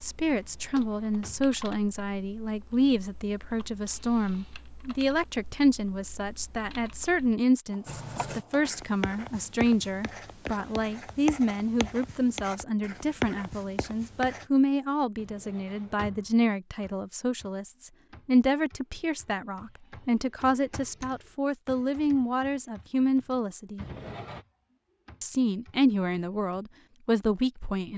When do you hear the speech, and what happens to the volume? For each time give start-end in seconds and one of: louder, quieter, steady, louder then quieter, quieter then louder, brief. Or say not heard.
0.0-23.9 steady
25.2-27.9 brief.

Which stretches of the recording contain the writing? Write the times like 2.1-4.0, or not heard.
7.8-14.4.